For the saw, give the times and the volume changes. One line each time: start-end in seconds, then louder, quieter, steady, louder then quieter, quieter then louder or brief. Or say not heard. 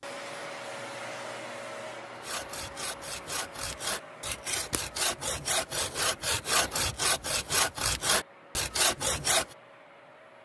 2.1-9.6 louder.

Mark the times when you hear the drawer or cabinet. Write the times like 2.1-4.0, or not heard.
not heard.